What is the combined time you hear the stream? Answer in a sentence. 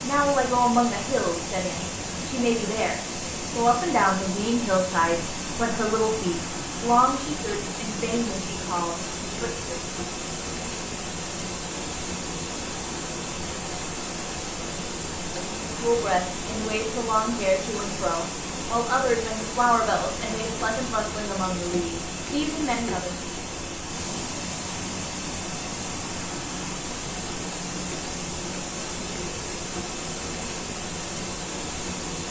The stream can be heard for 32 seconds in total.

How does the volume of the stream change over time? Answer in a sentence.
The volume of the stream stays about the same.